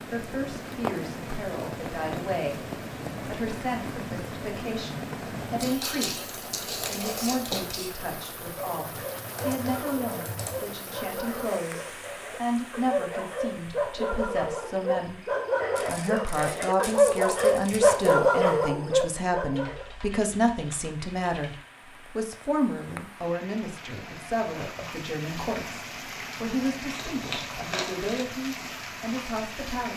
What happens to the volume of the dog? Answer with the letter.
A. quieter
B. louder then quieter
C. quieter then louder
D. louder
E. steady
D.